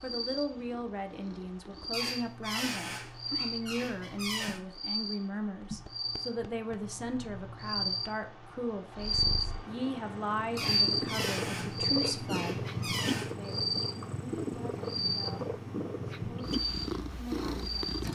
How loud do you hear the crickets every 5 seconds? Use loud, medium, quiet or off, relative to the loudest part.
medium, loud, loud, loud.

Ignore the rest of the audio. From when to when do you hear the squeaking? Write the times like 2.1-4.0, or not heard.
1.9-4.6, 10.6-13.3.